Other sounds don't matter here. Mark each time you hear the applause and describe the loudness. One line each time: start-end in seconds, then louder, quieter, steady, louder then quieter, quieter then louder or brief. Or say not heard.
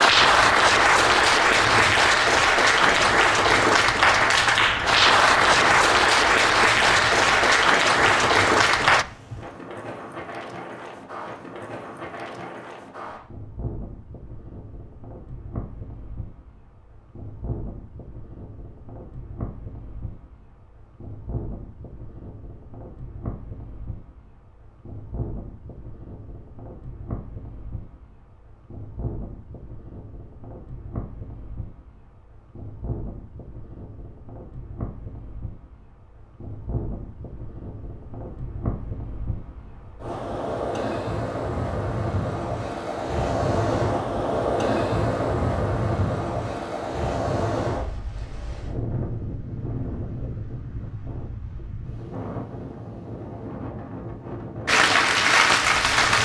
0.0-9.1 steady
54.6-56.2 brief.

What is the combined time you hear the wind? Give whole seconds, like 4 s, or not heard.
56 s.